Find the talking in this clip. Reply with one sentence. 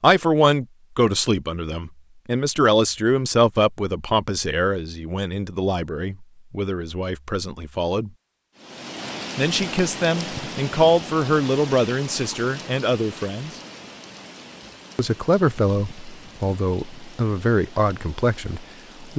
The talking can be heard from 0.0 to 8.1 s, from 9.3 to 13.5 s and from 14.9 to 19.1 s.